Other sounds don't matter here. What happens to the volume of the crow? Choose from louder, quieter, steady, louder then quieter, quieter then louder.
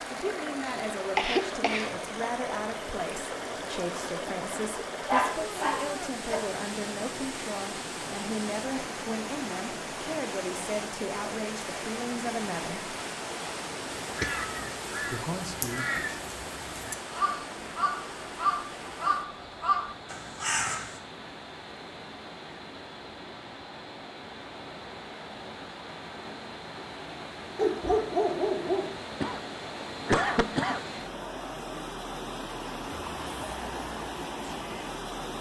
louder.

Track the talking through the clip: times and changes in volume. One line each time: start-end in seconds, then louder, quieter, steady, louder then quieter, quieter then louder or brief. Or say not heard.
0.0-12.9 steady
15.1-15.8 brief.